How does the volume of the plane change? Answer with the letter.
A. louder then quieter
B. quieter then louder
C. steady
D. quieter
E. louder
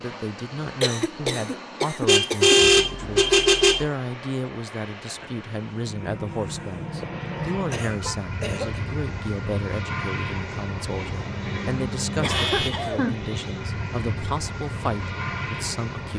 E.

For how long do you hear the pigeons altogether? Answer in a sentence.
The pigeons can't be heard in this clip.